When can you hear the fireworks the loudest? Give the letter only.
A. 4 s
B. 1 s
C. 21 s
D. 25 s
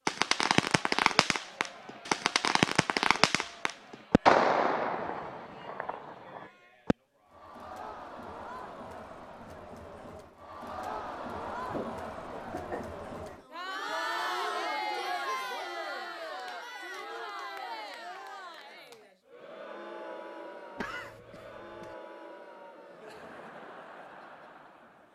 A.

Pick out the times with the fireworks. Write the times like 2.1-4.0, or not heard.
0.1-7.0.